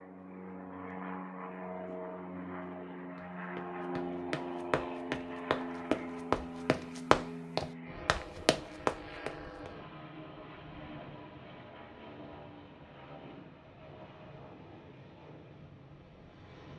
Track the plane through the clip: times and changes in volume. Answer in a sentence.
You can hear the plane from 0.0 to 16.7 s, getting quieter.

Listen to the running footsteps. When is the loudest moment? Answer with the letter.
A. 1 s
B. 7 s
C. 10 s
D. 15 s
B.